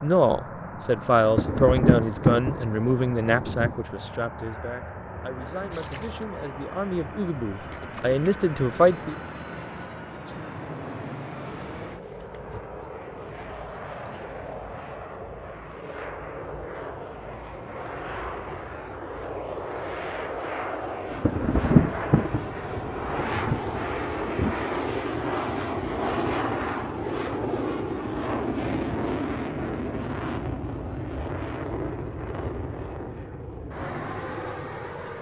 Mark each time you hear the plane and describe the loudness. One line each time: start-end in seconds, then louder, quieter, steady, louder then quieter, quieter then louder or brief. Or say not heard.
0.0-35.1 louder.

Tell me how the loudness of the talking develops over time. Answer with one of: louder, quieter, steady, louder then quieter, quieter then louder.
quieter then louder.